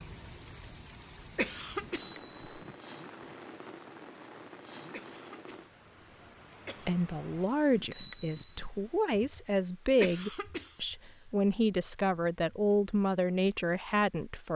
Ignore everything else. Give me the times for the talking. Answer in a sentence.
You can hear the talking from 6.8 to 14.5 s.